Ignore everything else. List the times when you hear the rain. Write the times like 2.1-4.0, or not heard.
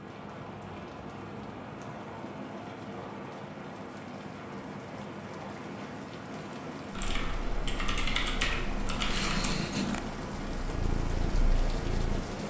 0.0-12.4.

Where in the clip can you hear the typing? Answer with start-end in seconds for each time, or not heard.
6.9-9.6.